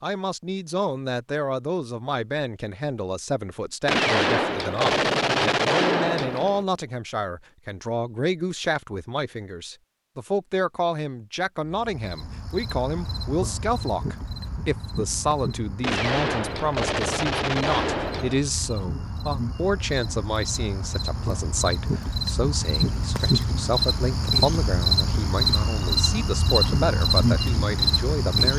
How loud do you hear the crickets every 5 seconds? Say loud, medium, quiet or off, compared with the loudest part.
off, off, quiet, quiet, loud, loud.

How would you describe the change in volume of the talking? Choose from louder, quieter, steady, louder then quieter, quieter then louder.
steady.